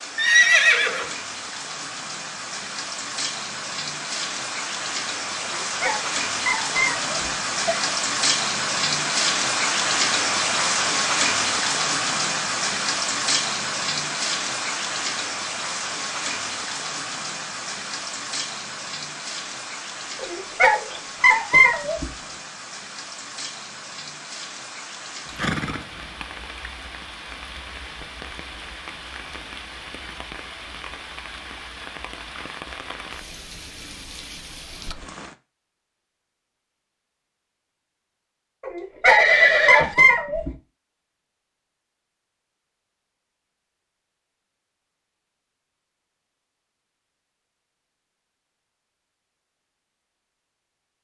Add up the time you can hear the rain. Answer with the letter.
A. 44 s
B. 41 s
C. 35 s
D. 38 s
C.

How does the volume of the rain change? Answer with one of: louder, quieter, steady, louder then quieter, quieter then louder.
louder then quieter.